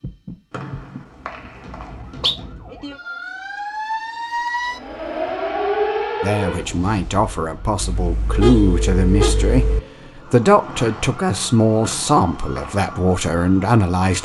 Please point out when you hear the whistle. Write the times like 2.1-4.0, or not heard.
0.5-2.4, 11.8-12.8.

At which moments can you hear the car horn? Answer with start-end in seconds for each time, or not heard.
7.8-9.8.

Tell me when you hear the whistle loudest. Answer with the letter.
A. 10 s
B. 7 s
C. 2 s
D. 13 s
C.